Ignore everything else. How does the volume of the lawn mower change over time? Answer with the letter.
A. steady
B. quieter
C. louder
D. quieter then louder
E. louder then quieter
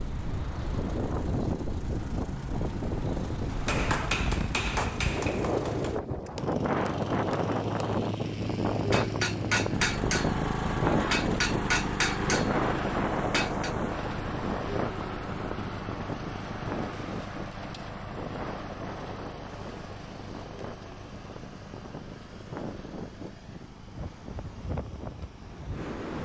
E.